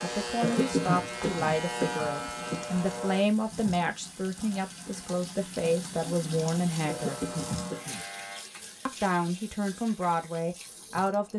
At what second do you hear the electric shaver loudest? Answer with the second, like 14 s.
2 s.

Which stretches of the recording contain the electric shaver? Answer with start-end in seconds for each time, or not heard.
0.0-3.2, 6.8-8.4.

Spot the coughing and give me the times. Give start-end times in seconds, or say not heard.
0.4-2.8, 6.8-8.1.